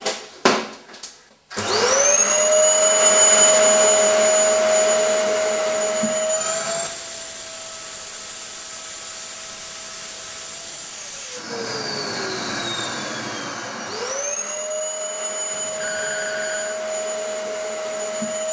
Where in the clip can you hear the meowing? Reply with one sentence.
The meowing can't be heard in this clip.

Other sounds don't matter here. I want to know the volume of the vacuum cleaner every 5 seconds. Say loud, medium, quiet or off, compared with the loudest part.
loud, medium, quiet, medium.